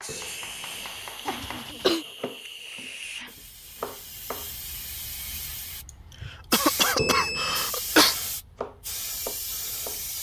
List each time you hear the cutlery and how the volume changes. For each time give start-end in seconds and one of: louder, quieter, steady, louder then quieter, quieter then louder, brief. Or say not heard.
not heard.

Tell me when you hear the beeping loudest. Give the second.
7 s.